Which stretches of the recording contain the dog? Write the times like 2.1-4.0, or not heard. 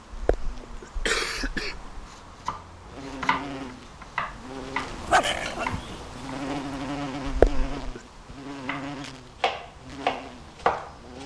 5.0-6.8.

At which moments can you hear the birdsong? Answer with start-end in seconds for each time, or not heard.
not heard.